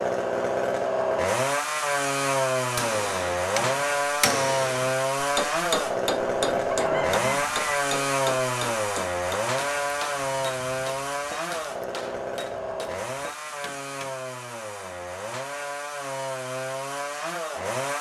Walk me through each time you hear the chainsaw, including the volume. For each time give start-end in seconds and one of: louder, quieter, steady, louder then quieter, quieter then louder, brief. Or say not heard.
0.0-17.9 quieter.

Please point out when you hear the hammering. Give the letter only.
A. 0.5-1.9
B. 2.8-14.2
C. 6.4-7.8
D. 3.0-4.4
B.